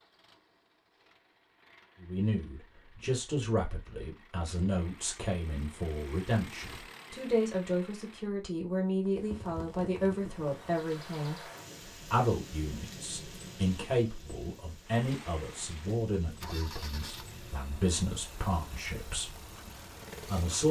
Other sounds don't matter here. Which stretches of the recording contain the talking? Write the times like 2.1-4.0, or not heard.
2.0-20.6.